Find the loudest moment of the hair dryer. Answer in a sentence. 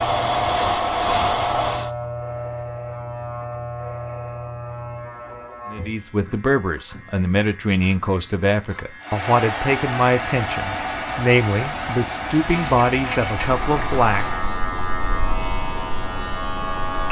The volume of the hair dryer peaks at 1 second.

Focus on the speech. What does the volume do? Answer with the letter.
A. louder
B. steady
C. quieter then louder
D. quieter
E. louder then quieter
B.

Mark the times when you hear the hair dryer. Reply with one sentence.
The hair dryer can be heard from 0.0 to 1.9 s and from 9.0 to 14.5 s.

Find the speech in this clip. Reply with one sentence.
The speech can be heard from 5.7 to 14.4 s.